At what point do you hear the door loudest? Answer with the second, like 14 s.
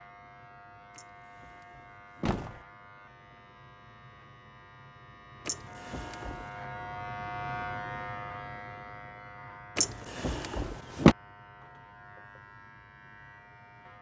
11 s.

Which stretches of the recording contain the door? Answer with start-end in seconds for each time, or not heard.
0.9-2.6, 5.5-6.5, 9.8-11.2.